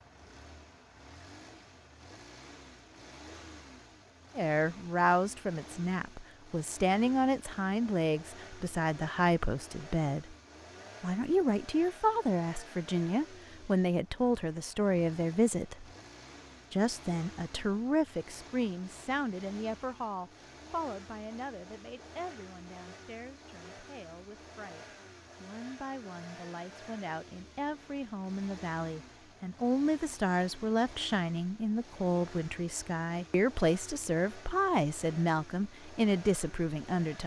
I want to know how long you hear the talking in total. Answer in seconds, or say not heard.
31 s.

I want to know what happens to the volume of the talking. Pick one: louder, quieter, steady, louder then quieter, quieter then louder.
quieter then louder.